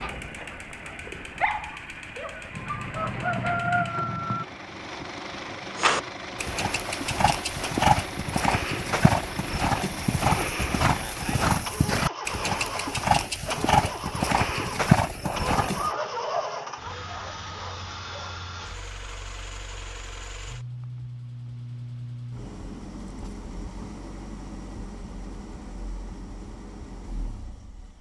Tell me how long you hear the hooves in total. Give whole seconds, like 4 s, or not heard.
10 s.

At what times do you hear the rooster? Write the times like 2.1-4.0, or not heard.
2.5-4.5.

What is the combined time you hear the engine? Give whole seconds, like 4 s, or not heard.
28 s.